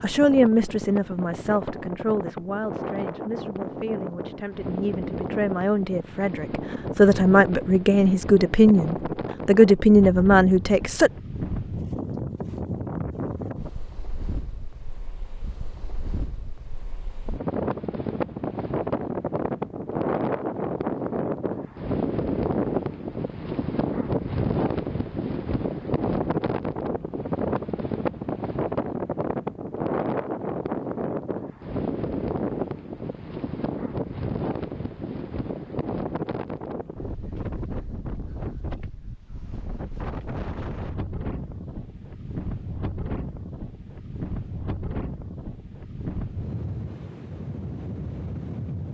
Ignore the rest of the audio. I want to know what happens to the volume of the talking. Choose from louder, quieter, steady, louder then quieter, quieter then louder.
quieter then louder.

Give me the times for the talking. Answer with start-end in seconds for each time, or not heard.
0.0-11.1.